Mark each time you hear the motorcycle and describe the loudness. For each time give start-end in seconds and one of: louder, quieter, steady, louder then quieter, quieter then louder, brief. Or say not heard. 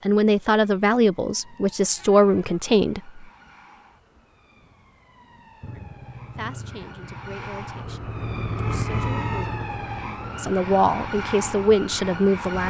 5.6-12.6 louder then quieter.